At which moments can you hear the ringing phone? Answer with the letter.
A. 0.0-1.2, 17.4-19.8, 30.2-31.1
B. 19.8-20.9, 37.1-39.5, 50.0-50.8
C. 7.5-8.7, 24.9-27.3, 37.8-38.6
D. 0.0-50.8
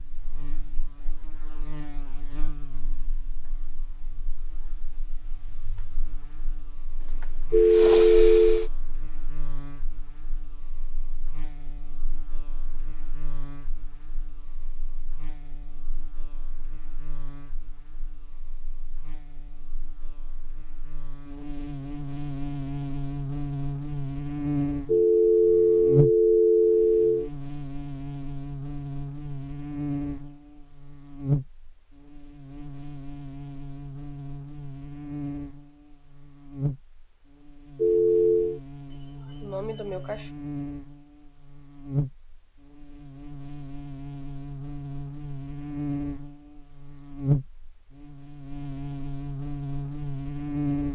C.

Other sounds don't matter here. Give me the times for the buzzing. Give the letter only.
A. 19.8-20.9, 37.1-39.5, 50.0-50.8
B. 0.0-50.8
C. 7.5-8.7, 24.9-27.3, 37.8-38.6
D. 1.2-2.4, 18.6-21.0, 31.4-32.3
B.